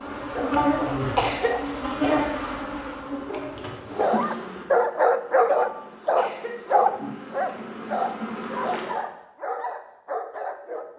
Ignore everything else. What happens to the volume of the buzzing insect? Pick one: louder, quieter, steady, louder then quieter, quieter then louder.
quieter then louder.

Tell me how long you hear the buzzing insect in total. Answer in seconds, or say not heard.
9 s.